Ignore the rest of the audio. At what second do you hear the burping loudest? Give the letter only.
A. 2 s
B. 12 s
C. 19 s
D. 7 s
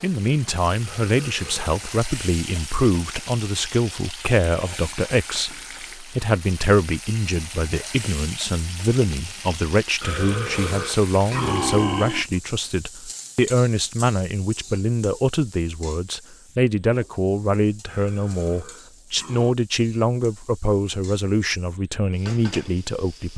B.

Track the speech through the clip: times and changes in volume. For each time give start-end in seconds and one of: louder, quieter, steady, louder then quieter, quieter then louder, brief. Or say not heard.
0.0-23.3 steady.